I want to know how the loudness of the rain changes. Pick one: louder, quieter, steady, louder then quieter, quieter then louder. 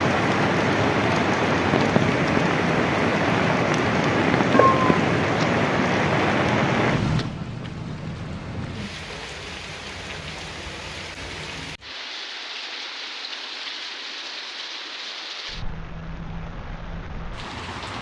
quieter.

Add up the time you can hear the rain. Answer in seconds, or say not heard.
18 s.